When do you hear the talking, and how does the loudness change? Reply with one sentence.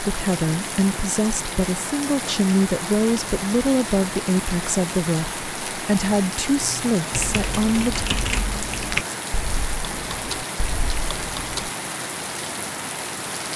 The talking can be heard from 0.0 to 8.1 s, at a steady volume.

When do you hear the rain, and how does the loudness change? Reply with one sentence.
The rain can be heard from 0.0 to 13.5 s, at a steady volume.